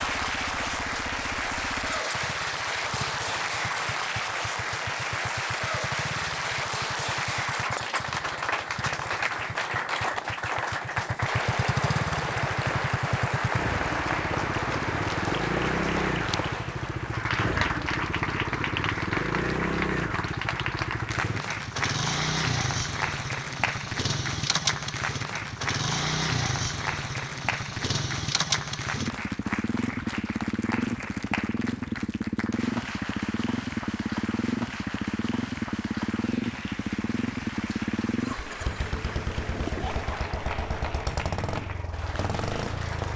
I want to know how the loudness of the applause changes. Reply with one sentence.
The loudness of the applause goes down.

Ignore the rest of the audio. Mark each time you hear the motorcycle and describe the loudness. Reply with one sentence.
The motorcycle can be heard from 0.0 to 43.1 s, getting louder.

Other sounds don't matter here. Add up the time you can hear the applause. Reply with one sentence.
You can hear the applause for 43 seconds altogether.